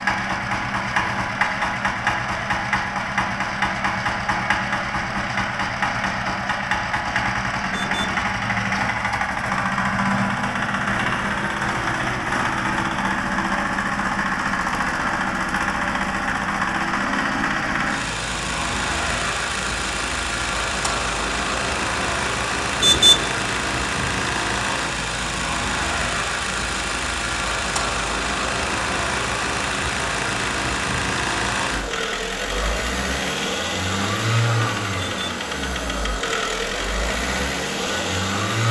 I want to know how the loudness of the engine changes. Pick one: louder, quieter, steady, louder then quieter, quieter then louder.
steady.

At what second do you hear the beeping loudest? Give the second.
23 s.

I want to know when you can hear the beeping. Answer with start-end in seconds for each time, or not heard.
7.7-8.2, 22.8-23.2, 35.0-35.4.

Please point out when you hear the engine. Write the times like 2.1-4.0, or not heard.
0.0-38.6.